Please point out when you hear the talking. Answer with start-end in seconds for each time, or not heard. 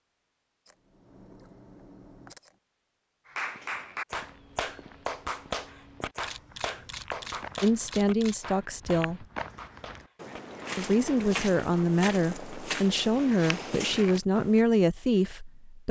7.6-9.2, 10.8-15.8.